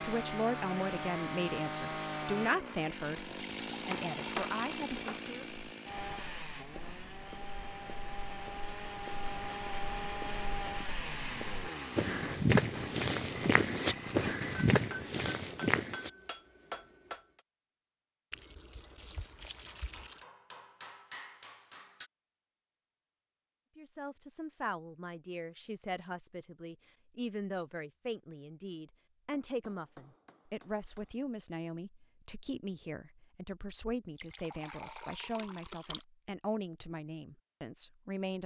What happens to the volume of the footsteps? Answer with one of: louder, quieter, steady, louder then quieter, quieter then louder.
louder.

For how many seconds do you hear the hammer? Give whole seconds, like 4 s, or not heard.
9 s.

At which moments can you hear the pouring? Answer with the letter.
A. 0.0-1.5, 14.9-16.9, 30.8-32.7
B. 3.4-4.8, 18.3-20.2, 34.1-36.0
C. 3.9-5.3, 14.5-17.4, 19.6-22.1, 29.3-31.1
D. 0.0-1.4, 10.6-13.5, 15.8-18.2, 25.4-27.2
B.